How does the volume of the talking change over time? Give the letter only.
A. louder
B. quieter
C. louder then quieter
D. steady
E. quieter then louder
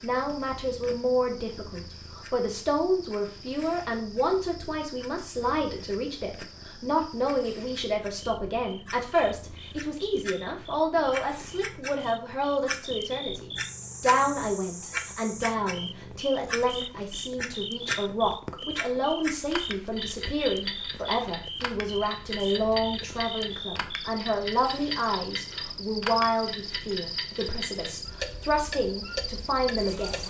D.